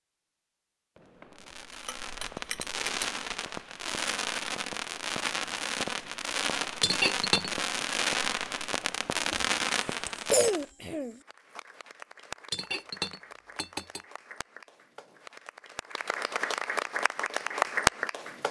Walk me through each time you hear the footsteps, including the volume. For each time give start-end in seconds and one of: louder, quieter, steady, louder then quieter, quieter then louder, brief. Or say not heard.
not heard.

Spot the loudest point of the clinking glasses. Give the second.
7 s.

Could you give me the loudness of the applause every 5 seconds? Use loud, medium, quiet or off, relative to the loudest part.
off, off, quiet, loud.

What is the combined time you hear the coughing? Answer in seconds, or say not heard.
2 s.